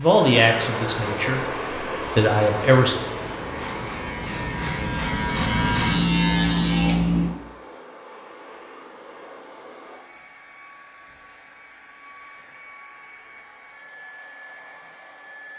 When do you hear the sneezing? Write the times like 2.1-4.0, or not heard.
not heard.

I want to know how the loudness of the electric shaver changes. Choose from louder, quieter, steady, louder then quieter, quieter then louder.
louder.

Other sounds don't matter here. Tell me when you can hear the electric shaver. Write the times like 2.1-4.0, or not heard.
0.0-7.3.